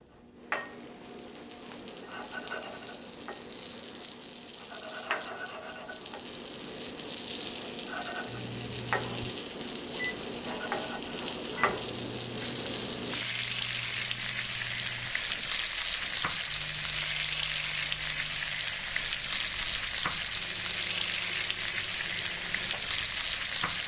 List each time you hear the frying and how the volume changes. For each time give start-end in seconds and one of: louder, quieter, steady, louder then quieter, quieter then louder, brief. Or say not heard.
0.0-23.8 louder.